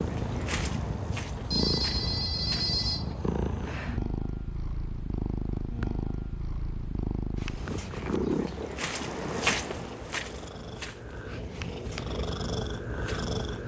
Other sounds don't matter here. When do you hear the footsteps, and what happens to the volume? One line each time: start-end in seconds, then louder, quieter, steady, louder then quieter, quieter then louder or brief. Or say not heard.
0.0-2.8 brief
7.3-13.6 louder then quieter.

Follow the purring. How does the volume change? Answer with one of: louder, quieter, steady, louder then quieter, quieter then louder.
steady.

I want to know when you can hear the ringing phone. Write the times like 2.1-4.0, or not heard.
1.4-3.1.